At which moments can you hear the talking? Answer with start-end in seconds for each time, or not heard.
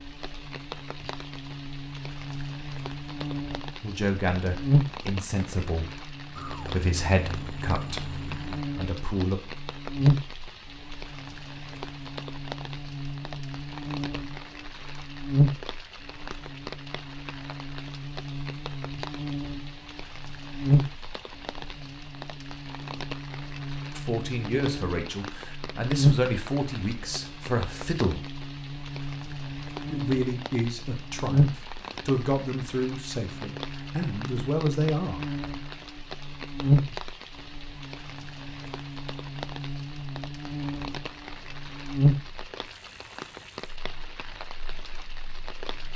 3.8-9.4, 23.9-28.3, 29.9-35.3.